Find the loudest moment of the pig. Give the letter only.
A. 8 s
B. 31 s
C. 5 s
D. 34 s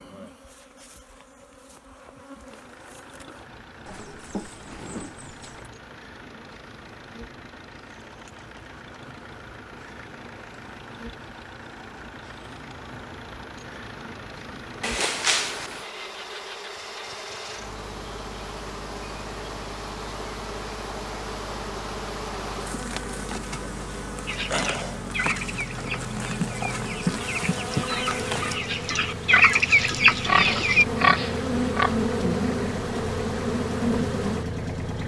B.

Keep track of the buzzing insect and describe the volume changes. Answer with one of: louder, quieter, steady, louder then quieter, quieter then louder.
louder.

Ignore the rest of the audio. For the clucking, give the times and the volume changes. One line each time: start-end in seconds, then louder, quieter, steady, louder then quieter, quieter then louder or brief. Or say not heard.
24.2-30.9 quieter then louder.